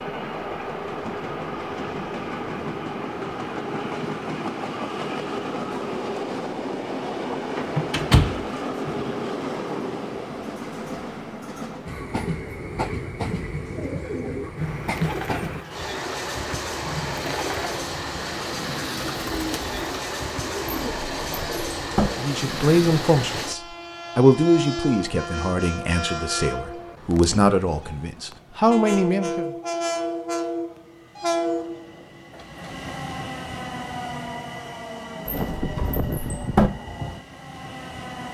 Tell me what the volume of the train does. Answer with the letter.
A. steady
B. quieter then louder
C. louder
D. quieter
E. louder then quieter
A.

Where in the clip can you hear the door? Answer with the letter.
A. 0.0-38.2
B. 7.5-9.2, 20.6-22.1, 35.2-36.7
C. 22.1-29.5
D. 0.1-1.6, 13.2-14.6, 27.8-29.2
B.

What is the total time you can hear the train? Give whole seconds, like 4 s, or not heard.
38 s.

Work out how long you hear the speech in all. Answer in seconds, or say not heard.
7 s.